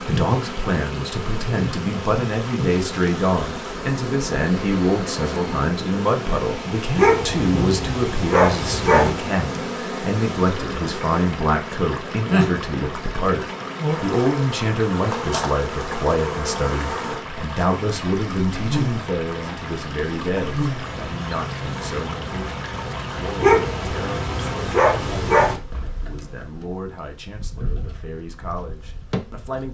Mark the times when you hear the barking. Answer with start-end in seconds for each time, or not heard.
7.0-9.2, 23.4-25.6.